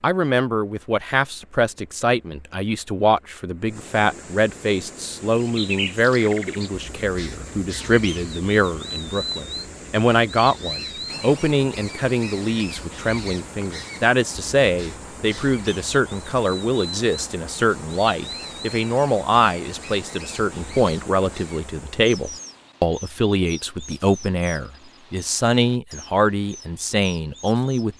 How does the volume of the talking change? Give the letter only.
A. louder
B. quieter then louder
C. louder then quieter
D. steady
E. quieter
D.